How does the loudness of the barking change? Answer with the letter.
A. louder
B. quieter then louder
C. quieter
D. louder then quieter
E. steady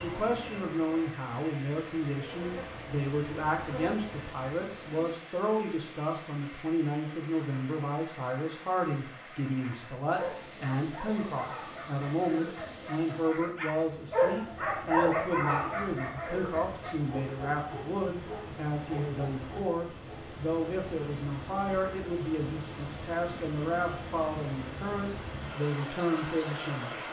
D.